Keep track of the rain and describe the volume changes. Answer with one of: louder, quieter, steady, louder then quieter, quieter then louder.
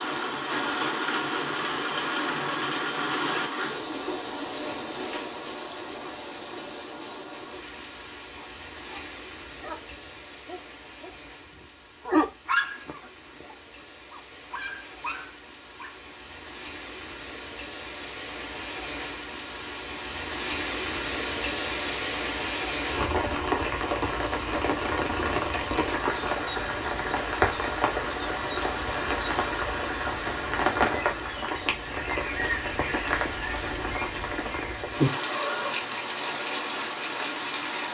quieter then louder.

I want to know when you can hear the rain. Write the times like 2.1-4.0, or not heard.
0.0-37.9.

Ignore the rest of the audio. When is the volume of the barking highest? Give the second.
12 s.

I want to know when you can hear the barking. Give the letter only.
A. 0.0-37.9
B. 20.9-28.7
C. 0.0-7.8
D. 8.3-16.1
D.